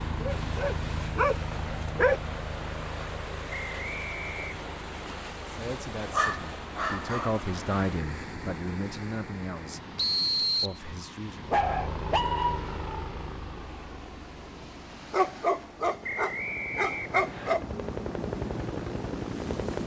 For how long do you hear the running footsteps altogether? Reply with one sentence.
You can't hear the running footsteps here.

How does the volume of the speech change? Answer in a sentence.
The volume of the speech goes up, then down.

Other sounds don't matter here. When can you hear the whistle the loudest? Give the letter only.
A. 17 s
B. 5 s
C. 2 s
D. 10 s
D.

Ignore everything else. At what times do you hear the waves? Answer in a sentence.
The waves can be heard from 0.0 to 19.8 s.